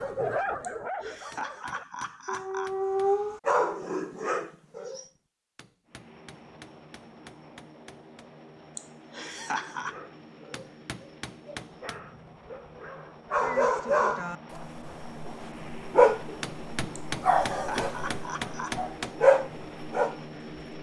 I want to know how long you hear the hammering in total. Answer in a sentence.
You can hear the hammering for 9 seconds altogether.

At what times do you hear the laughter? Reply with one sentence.
You can hear the laughter from 0.6 to 2.8 s, from 8.8 to 9.9 s and from 16.9 to 18.8 s.